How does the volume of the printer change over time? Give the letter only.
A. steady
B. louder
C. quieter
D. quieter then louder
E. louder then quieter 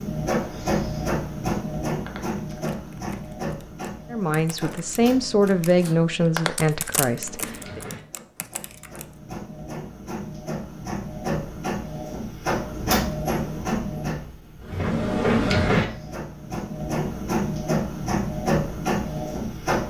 D.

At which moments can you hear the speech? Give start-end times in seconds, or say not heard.
4.1-7.8.